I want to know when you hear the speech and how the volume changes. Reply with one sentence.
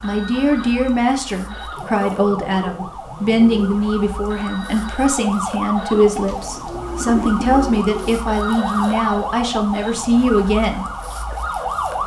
The speech can be heard from 0.0 to 10.8 s, at a steady volume.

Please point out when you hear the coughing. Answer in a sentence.
The coughing can't be heard in this clip.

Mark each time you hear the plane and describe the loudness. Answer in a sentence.
The plane can't be heard in this clip.